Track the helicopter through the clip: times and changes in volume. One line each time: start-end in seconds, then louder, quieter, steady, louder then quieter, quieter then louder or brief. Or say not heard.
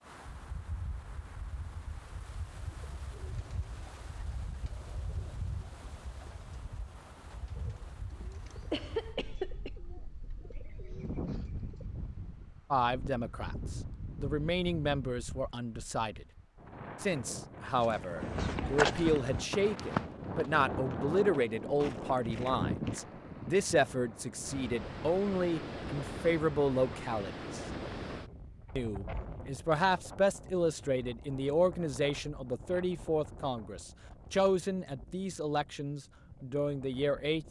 not heard.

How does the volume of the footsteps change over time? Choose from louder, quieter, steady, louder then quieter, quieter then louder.
quieter then louder.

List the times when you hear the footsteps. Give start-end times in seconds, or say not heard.
17.8-23.1.